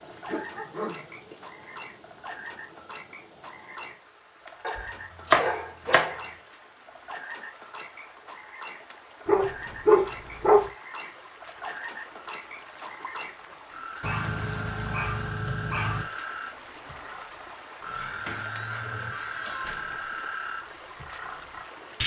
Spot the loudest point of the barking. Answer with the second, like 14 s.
10 s.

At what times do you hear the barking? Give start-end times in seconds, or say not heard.
0.1-1.4, 4.6-6.3, 9.2-10.6, 14.0-16.1, 17.9-20.1.